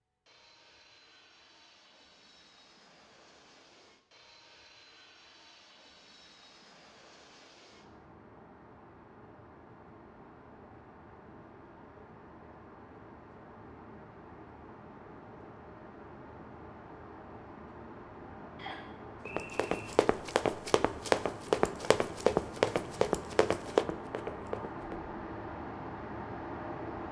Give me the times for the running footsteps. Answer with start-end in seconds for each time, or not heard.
19.2-25.0.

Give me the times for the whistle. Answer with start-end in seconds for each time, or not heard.
18.6-19.8.